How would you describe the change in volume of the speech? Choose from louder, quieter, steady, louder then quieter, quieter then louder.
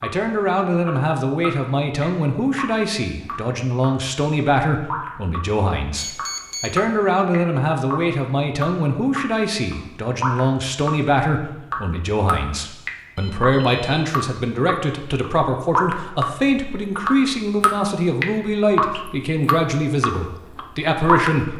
steady.